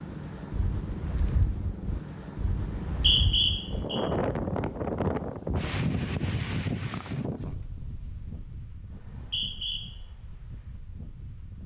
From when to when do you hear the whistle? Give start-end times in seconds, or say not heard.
2.6-4.0, 8.9-9.8.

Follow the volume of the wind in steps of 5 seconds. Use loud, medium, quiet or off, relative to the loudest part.
loud, loud, quiet.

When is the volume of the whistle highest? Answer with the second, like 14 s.
3 s.